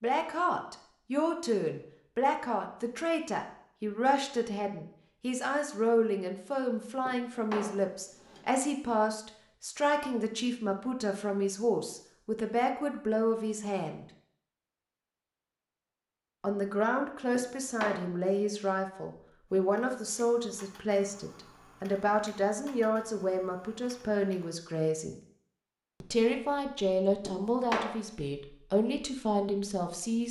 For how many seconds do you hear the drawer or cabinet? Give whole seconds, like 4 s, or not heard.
3 s.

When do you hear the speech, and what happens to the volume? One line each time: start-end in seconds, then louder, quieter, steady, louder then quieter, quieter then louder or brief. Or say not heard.
0.0-14.1 steady
16.4-25.1 steady
26.0-30.2 quieter then louder.